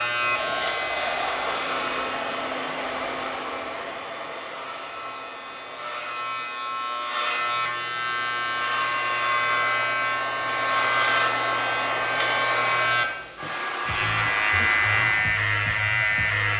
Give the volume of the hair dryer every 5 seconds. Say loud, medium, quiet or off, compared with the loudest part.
loud, medium, loud, medium.